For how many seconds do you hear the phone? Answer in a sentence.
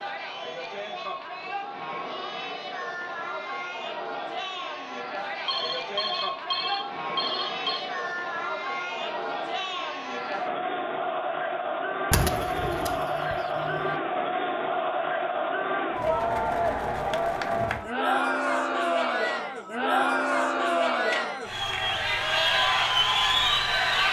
You can hear the phone for 3 seconds altogether.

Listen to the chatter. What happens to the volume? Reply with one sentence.
The loudness of the chatter goes up.